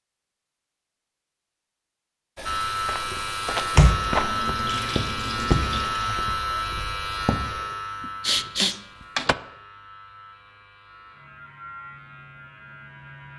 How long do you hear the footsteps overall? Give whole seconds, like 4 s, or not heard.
5 s.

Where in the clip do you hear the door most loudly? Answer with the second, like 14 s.
4 s.